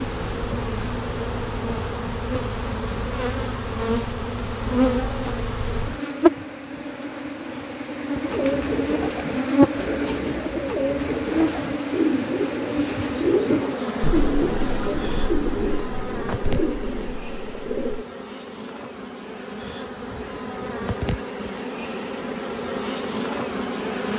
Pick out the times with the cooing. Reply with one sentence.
The cooing can be heard from 8.2 to 18.1 s.